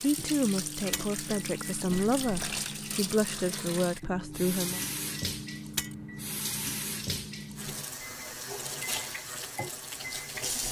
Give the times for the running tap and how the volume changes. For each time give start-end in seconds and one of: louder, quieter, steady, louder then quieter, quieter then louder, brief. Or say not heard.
0.0-10.6 steady.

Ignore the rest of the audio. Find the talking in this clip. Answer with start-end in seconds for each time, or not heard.
0.0-4.8.